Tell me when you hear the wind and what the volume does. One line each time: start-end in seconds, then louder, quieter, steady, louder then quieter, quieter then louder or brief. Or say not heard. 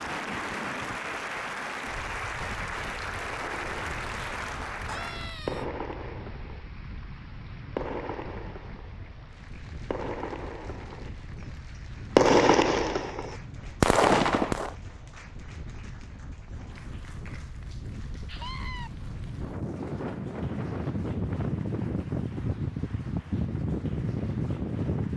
0.0-25.1 louder.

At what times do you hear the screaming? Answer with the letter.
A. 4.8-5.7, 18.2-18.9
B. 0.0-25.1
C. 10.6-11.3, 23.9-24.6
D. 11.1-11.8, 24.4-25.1
A.